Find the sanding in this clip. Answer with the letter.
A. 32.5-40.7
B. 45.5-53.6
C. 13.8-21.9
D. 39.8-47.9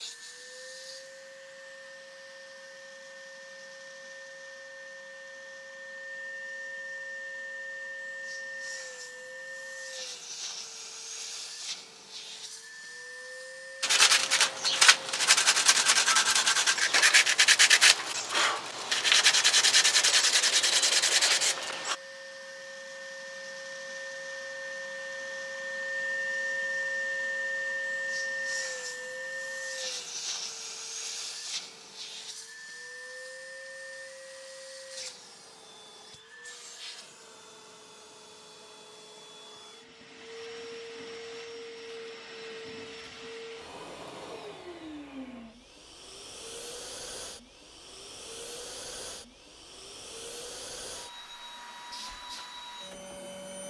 C.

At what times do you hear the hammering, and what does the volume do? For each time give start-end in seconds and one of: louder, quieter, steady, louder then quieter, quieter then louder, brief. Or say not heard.
not heard.